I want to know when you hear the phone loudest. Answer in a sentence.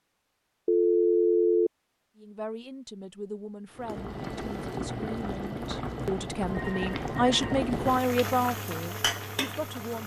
The volume of the phone peaks at 1 second.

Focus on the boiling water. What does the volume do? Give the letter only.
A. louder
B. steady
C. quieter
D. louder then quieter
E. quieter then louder
B.